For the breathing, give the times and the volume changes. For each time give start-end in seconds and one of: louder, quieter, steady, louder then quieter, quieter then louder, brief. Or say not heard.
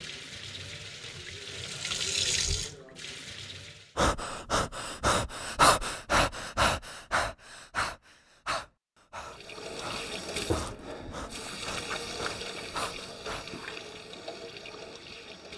4.0-13.6 quieter.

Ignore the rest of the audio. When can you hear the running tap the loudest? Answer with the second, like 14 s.
2 s.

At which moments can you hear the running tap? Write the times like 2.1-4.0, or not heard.
0.0-4.0, 9.2-15.5.